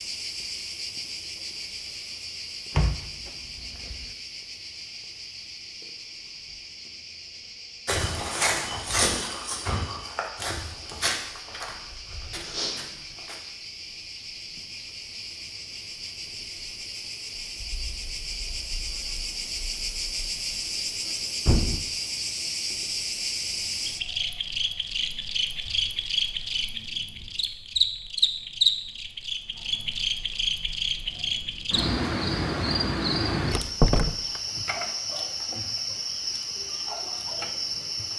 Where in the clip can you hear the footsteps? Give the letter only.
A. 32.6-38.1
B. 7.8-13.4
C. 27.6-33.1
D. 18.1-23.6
B.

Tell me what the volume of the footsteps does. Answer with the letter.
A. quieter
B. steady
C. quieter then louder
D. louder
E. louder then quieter
A.